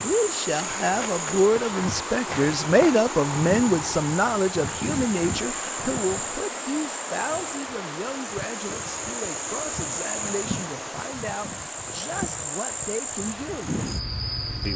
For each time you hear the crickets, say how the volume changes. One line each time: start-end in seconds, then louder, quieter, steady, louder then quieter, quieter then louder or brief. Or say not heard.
0.0-14.7 steady.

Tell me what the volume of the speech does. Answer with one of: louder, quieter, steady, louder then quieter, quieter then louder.
quieter.